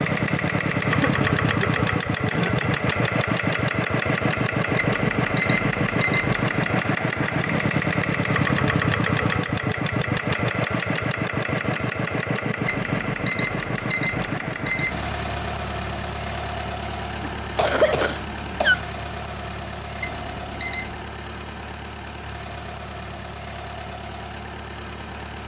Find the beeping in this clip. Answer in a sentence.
The beeping can be heard from 4.8 to 6.6 s, from 12.7 to 15.1 s and from 20.0 to 21.1 s.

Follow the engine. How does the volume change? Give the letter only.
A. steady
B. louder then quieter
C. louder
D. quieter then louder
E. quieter
E.